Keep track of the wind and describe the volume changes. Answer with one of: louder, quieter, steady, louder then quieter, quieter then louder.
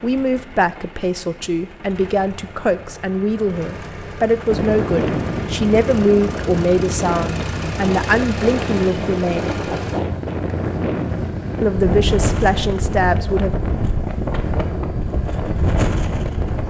steady.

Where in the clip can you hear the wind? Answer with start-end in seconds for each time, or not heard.
4.5-16.6.